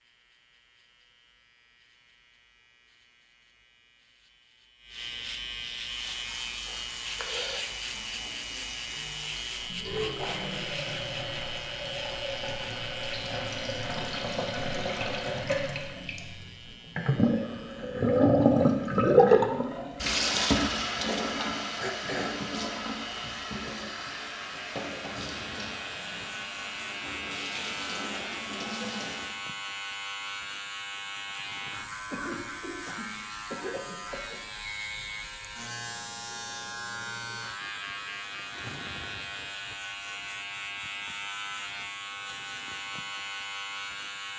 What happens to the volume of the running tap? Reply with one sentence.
The loudness of the running tap goes up, then down.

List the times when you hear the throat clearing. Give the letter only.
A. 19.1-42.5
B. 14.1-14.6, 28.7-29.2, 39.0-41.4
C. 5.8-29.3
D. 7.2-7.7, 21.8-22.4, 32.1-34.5
D.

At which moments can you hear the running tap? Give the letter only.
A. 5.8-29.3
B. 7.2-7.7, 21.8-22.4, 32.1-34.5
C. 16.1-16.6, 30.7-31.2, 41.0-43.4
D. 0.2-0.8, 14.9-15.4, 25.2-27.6
A.